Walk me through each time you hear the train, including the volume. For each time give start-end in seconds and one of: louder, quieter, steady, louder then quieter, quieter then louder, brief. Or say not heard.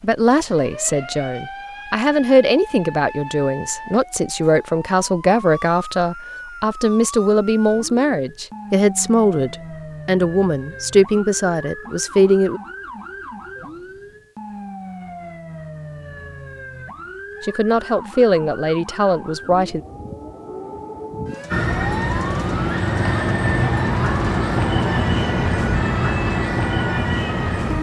21.5-27.7 steady.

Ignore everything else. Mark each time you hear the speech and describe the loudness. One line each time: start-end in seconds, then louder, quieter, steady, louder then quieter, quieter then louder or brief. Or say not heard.
0.0-12.6 steady
17.4-19.8 brief.